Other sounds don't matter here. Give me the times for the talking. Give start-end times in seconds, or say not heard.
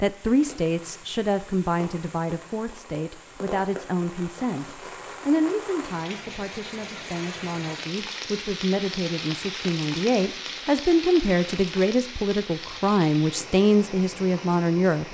0.0-15.0.